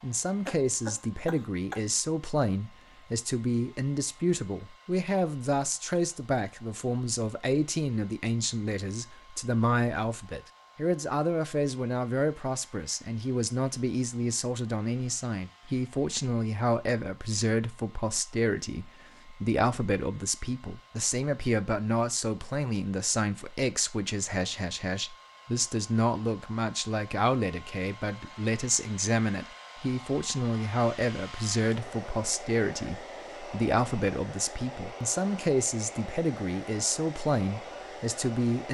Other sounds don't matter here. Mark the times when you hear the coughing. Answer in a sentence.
You can hear the coughing from 0.5 to 1.9 s.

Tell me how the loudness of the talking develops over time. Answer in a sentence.
The loudness of the talking stays about the same.